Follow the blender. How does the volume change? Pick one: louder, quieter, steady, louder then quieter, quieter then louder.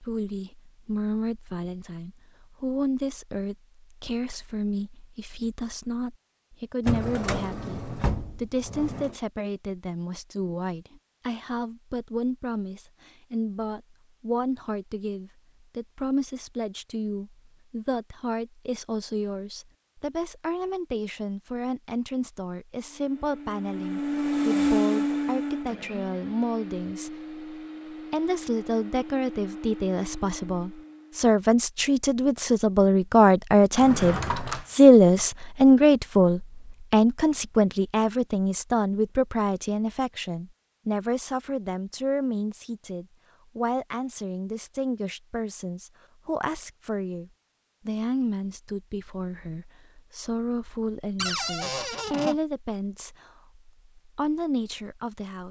quieter.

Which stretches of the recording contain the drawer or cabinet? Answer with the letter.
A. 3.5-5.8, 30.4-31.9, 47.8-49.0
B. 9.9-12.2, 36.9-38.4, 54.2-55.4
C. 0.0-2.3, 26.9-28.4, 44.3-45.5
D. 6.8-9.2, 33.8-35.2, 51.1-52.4
D.